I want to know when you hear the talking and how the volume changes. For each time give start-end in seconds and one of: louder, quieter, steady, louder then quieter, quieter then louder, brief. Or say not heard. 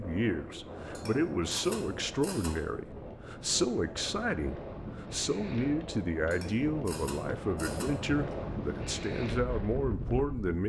0.0-10.6 steady.